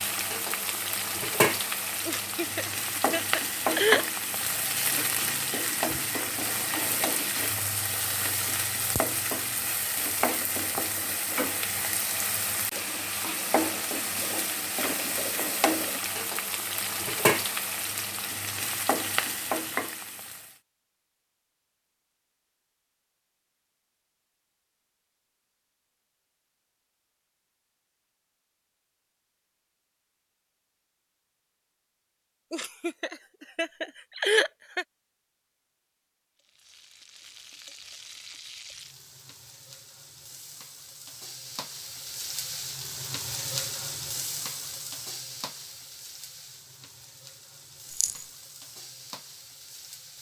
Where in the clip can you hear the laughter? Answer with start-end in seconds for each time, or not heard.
2.0-4.0, 32.5-34.9.